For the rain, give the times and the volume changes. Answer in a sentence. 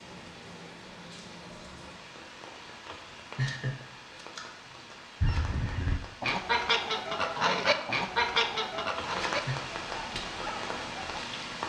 You can hear the rain from 0.0 to 11.6 s, getting louder.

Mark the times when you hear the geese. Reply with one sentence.
The geese can be heard from 5.2 to 11.2 s.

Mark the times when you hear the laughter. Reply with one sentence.
You can hear the laughter from 2.9 to 3.8 s and from 8.9 to 9.6 s.